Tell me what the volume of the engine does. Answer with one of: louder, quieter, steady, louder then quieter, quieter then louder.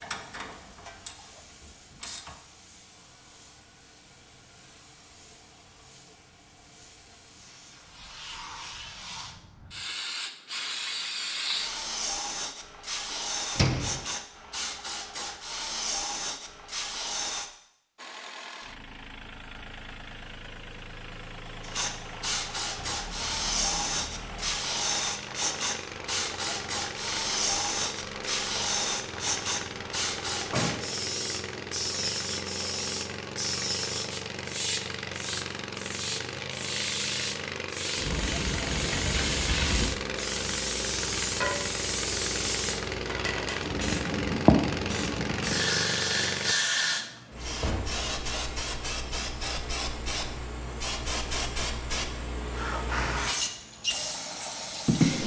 louder.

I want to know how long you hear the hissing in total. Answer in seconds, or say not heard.
51 s.